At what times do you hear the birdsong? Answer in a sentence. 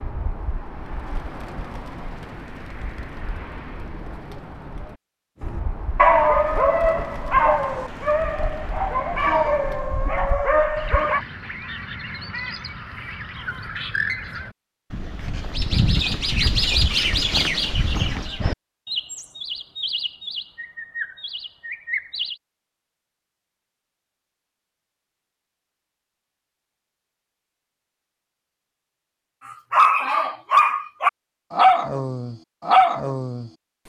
The birdsong can be heard from 0.0 to 22.4 s.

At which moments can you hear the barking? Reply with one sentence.
You can hear the barking from 5.5 to 11.2 s and from 29.4 to 33.5 s.